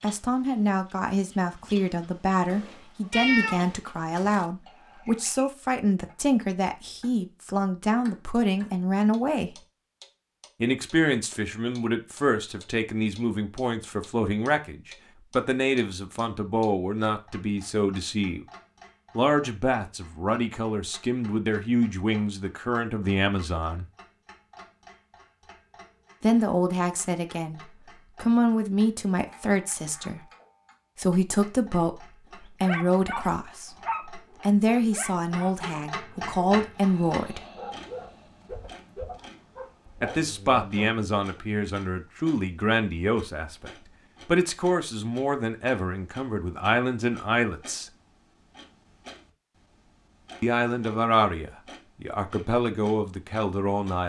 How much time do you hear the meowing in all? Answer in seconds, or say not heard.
2 s.